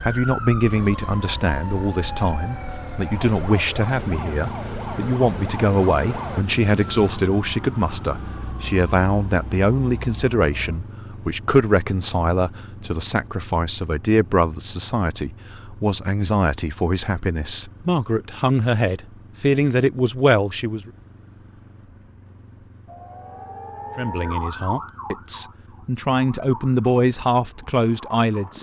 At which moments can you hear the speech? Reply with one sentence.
You can hear the speech from 0.0 to 20.9 s and from 23.9 to 28.5 s.